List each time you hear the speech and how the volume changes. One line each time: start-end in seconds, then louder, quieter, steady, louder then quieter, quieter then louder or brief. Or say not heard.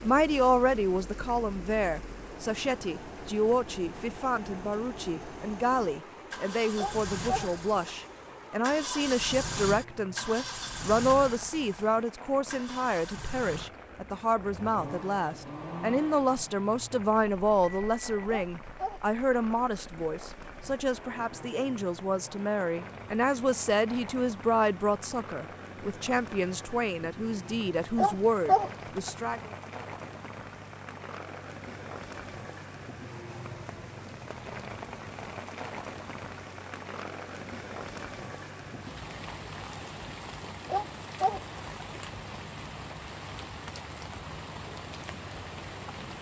0.0-29.5 steady.